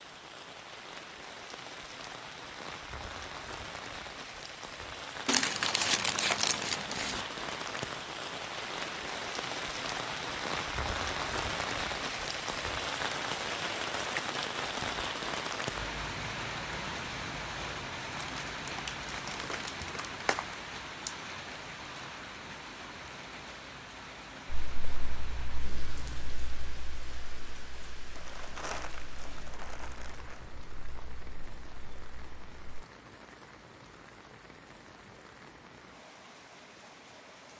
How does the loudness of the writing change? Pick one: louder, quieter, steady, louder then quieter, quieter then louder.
quieter.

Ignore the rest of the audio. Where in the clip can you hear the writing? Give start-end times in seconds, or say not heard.
24.5-32.8.